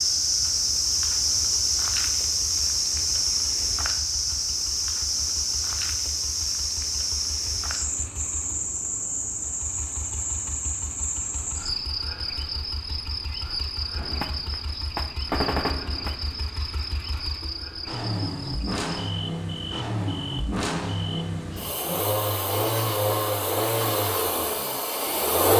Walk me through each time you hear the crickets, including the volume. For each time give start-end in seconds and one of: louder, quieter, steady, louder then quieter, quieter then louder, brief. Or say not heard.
0.0-25.3 quieter.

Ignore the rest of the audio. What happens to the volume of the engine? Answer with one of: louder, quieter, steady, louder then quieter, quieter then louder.
louder.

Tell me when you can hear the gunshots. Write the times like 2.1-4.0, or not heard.
13.9-16.4.